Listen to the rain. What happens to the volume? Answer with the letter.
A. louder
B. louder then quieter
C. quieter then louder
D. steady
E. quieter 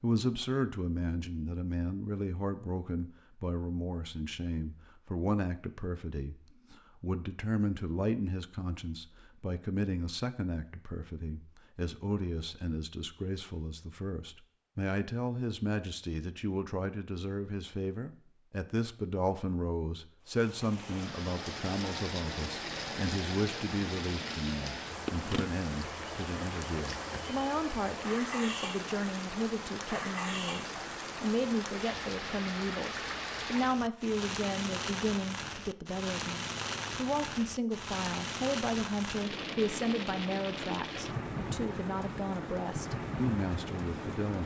D.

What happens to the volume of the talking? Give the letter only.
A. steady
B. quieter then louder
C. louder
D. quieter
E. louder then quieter
A.